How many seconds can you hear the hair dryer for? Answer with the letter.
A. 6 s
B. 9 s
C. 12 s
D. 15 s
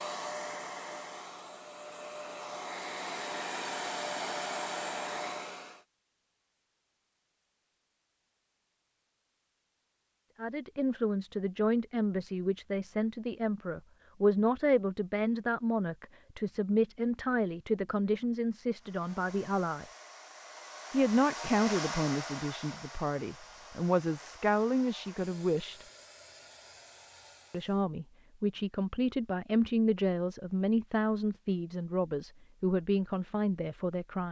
D.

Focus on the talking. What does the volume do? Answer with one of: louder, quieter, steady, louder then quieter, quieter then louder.
steady.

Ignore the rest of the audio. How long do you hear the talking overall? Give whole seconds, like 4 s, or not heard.
21 s.